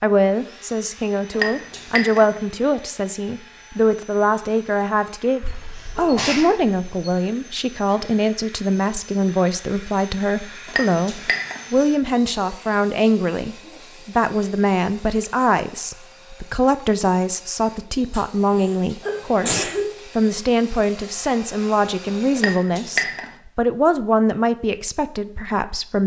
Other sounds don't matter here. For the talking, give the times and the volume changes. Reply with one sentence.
The talking can be heard from 0.0 to 26.0 s, at a steady volume.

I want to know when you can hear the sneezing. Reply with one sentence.
You can hear the sneezing from 5.4 to 7.0 s and from 18.1 to 19.9 s.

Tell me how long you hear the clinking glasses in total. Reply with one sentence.
The clinking glasses can be heard for 3 seconds in total.